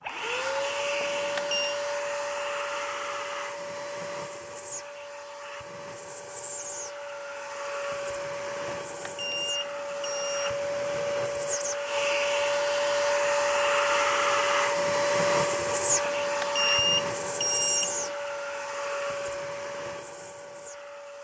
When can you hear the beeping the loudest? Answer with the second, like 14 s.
17 s.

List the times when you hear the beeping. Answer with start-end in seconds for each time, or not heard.
1.0-1.8, 8.8-10.9, 16.1-18.1.